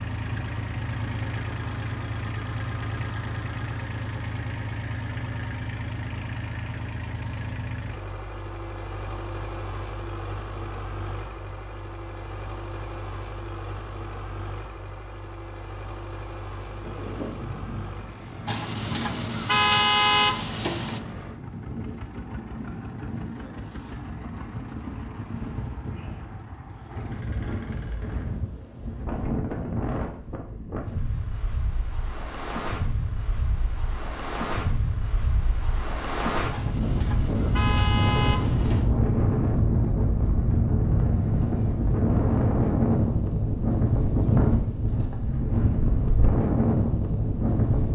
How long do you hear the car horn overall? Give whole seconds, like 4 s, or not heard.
5 s.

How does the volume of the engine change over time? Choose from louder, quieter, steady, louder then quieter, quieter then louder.
quieter.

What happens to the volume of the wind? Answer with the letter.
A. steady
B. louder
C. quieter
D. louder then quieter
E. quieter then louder
B.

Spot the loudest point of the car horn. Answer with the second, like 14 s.
20 s.